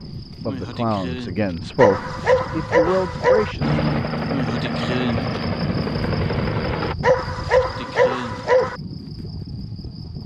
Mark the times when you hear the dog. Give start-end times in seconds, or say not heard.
1.8-3.5, 7.0-8.8.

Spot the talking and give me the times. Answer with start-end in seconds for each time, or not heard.
0.3-3.8.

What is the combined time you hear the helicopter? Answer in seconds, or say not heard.
3 s.